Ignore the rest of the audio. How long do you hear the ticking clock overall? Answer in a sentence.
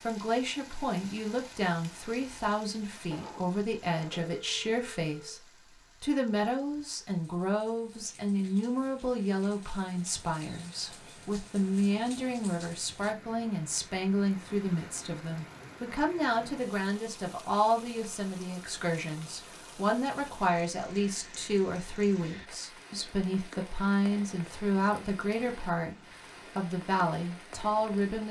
You can't hear the ticking clock here.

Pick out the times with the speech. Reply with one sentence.
You can hear the speech from 0.0 to 28.2 s.